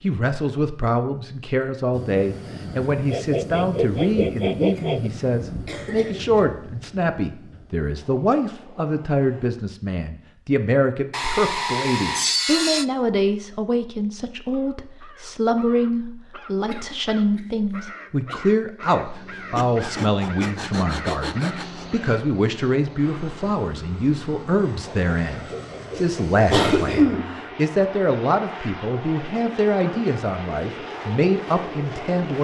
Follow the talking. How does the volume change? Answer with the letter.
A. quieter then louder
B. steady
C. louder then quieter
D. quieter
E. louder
B.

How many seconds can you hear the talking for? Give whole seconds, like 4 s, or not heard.
32 s.